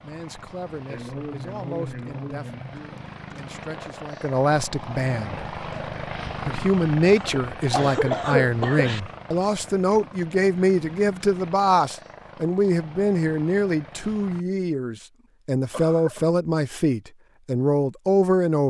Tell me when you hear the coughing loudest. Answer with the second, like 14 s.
8 s.